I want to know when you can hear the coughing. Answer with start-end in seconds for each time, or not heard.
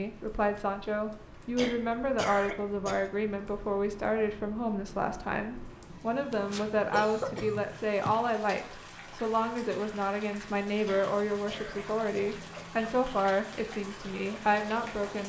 1.6-3.1, 6.3-8.2, 10.8-12.7.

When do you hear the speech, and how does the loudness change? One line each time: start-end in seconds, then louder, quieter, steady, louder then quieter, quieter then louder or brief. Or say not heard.
0.0-15.2 steady.